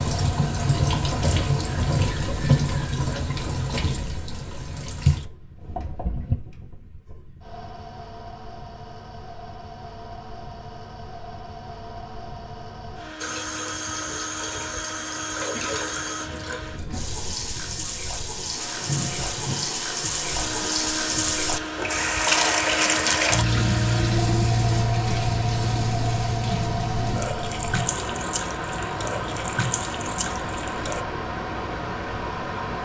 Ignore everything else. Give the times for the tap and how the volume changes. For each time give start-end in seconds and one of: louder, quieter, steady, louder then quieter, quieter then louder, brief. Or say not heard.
0.0-6.3 quieter then louder
13.2-31.1 louder then quieter.